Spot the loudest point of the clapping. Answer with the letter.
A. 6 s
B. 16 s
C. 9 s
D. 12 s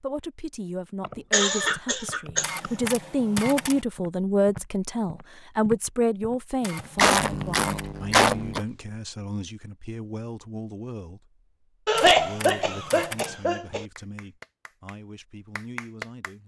B.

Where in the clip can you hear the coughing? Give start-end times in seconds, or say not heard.
1.0-2.7, 7.0-8.6, 11.8-13.8.